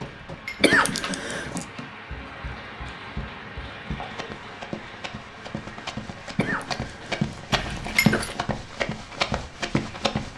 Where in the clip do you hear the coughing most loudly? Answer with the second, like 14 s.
1 s.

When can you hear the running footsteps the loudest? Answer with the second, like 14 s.
8 s.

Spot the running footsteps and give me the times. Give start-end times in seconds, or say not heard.
0.0-10.3.